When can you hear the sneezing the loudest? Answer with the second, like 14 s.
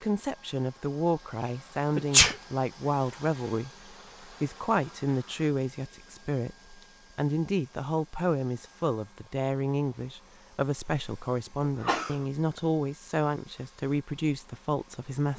2 s.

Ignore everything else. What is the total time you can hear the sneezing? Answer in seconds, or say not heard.
2 s.